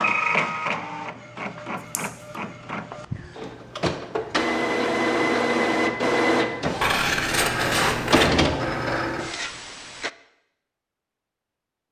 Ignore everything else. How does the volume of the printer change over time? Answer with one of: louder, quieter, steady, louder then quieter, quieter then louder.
louder.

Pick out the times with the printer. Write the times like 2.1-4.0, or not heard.
0.0-10.1.